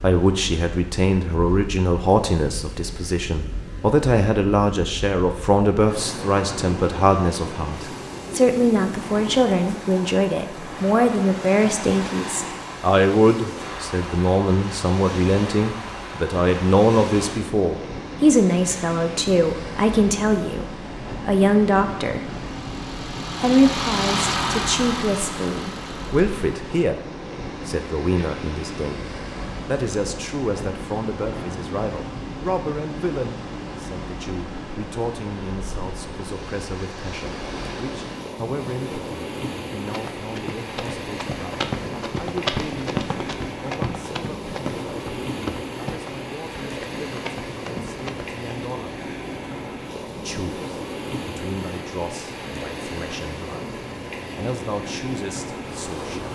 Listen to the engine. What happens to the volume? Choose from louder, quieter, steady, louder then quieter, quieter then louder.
louder then quieter.